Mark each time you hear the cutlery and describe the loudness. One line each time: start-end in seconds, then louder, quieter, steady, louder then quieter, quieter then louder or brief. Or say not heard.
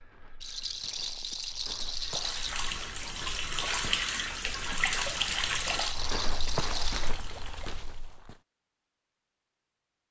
not heard.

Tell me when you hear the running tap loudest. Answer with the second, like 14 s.
5 s.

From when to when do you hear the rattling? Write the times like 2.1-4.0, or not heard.
0.4-2.5, 5.8-7.1.